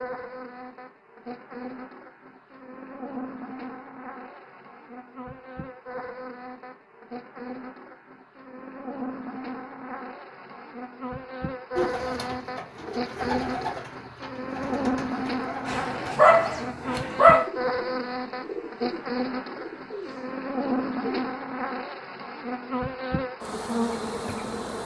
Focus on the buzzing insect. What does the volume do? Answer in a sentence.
The volume of the buzzing insect goes up.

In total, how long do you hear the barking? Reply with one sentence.
The barking can be heard for 2 seconds in total.